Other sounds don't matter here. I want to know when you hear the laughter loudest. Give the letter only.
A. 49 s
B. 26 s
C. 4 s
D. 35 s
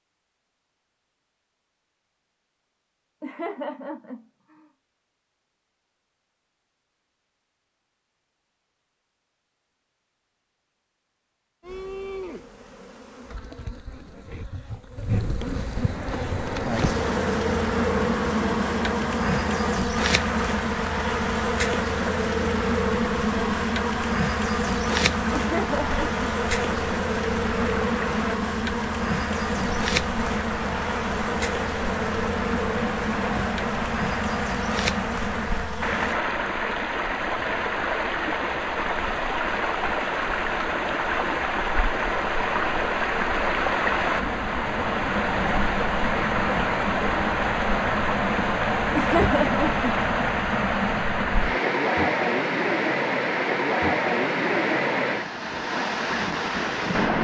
A.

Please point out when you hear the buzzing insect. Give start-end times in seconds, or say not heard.
11.6-36.2.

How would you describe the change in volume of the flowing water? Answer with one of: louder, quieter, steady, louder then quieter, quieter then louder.
louder.